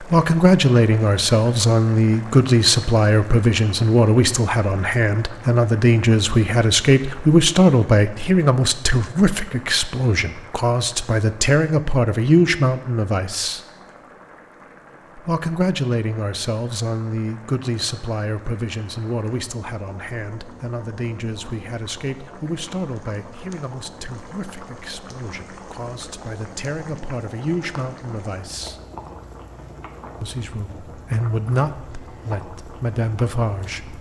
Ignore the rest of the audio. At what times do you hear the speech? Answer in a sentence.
The speech can be heard from 0.0 to 13.6 s, from 15.2 to 28.8 s and from 30.2 to 33.9 s.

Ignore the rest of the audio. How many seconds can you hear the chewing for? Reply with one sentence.
You can't hear the chewing here.